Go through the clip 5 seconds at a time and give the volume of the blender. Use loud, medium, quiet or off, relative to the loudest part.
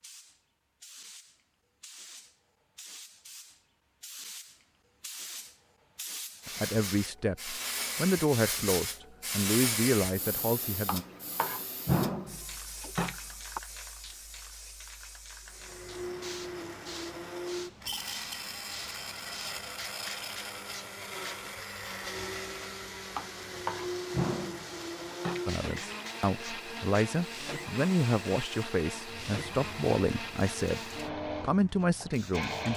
off, off, off, loud, loud, loud, loud.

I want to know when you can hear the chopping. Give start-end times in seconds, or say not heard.
10.8-13.6, 23.1-25.4.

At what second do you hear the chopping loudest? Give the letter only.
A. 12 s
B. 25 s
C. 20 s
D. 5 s
A.